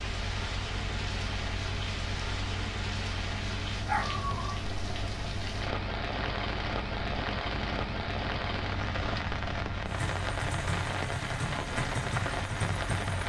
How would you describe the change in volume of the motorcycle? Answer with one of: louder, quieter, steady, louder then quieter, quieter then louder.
louder.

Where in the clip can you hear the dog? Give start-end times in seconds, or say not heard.
3.9-4.7.